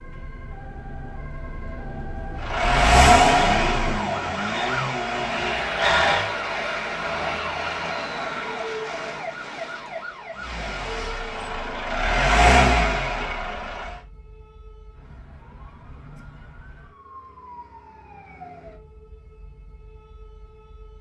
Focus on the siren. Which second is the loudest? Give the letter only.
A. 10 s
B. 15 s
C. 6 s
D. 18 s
C.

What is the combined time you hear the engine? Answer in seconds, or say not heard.
7 s.